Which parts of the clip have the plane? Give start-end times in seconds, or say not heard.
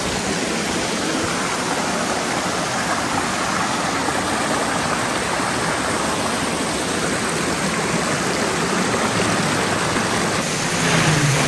9.1-11.4.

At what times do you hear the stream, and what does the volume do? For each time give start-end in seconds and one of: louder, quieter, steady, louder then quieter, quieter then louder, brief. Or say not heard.
0.0-11.4 steady.